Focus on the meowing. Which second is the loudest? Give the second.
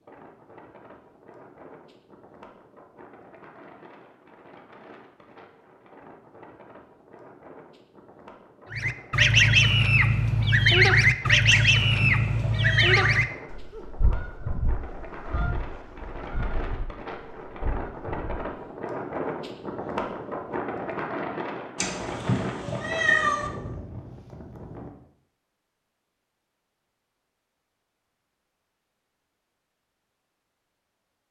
23 s.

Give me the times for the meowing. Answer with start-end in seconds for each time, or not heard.
11.5-13.2, 21.8-23.5.